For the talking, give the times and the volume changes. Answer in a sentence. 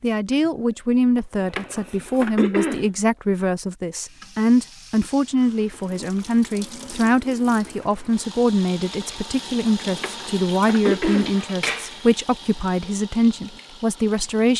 The talking can be heard from 0.0 to 14.5 s, at a steady volume.